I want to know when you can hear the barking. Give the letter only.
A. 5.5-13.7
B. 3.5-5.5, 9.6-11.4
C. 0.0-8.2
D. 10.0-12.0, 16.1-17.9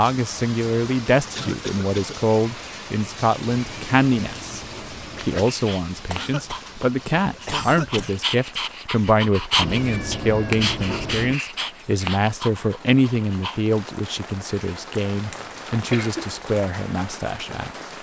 A.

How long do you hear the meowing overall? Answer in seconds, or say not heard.
4 s.